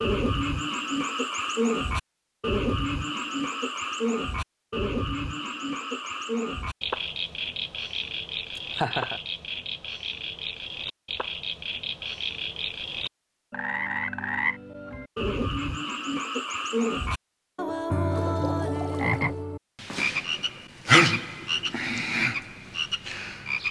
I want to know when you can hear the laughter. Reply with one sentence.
You can hear the laughter from 8.6 to 9.2 s.